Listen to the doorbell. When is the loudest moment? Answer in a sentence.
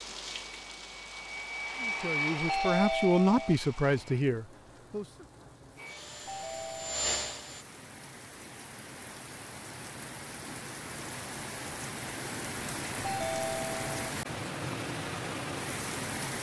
The volume of the doorbell peaks at 3 seconds.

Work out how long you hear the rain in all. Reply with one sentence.
You can hear the rain for 16 seconds altogether.